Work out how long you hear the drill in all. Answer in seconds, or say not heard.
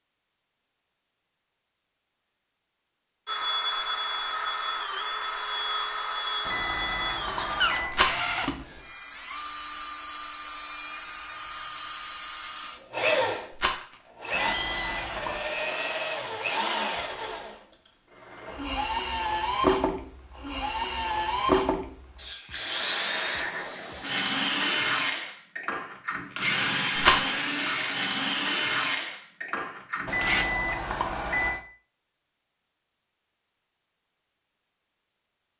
27 s.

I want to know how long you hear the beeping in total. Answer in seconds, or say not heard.
4 s.